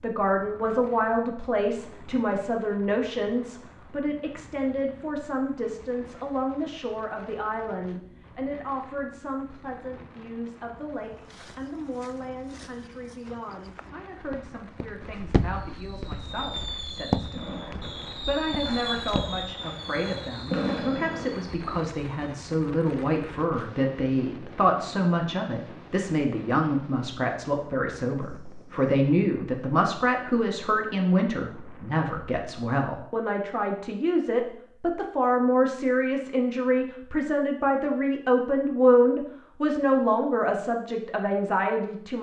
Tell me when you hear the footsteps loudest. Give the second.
17 s.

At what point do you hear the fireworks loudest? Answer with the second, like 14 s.
21 s.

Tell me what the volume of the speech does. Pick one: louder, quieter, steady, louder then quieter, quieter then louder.
quieter then louder.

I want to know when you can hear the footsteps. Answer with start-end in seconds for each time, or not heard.
11.2-19.4.